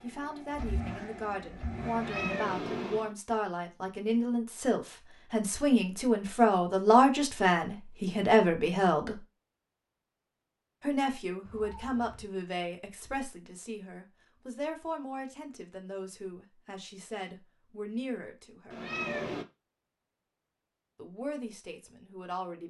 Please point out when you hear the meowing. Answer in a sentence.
You can hear the meowing from 1.9 to 3.1 s, from 11.4 to 12.2 s and from 18.7 to 19.4 s.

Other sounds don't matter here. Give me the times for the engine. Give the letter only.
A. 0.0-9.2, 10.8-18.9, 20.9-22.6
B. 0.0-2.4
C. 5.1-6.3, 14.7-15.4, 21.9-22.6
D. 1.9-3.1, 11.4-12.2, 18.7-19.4
B.